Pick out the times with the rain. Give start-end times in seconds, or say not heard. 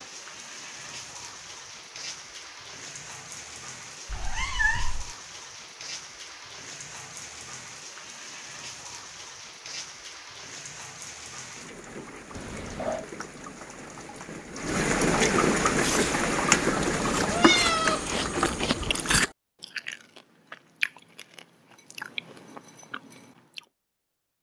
0.0-19.2.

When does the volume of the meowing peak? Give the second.
18 s.